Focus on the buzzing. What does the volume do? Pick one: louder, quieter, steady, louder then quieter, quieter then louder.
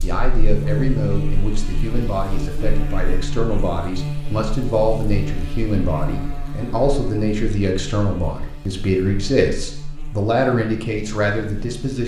quieter.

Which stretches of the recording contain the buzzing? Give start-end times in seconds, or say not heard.
0.0-12.0.